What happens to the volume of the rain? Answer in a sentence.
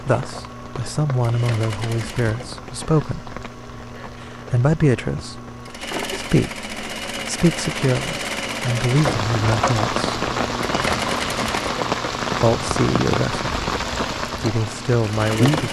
The volume of the rain goes up.